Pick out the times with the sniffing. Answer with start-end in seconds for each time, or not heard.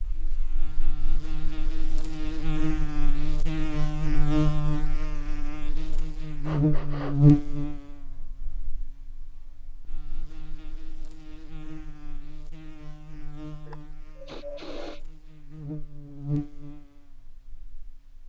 6.4-7.2, 13.7-15.0.